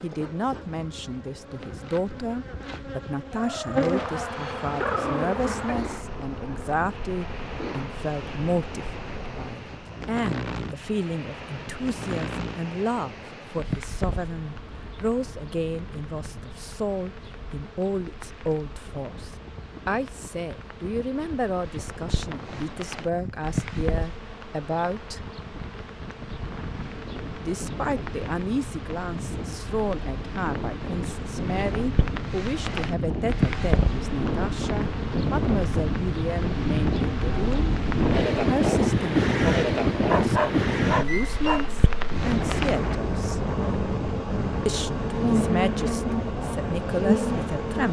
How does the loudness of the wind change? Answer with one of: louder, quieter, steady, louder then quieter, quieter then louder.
louder.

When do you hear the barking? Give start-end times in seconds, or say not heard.
3.3-5.8, 40.0-41.6.